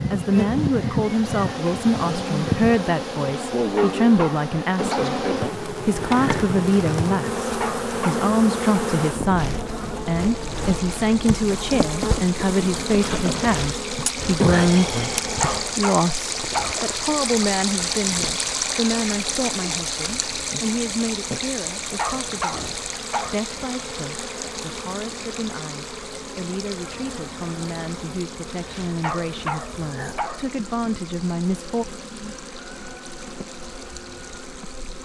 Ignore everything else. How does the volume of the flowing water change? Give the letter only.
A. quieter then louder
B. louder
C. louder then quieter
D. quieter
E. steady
C.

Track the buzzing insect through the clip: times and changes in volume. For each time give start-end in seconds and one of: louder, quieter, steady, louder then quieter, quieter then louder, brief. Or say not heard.
0.0-35.0 quieter.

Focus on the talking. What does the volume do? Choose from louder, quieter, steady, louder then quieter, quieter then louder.
quieter.